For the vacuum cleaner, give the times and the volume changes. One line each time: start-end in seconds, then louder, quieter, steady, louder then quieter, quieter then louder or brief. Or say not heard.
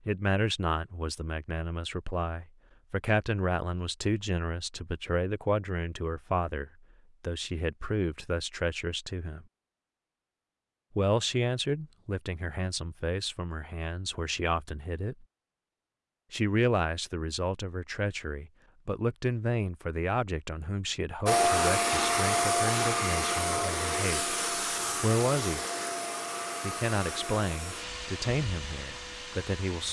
21.2-29.8 quieter.